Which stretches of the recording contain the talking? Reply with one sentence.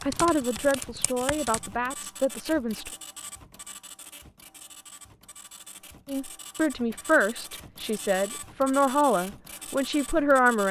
The talking can be heard from 0.0 to 2.9 s and from 6.0 to 10.6 s.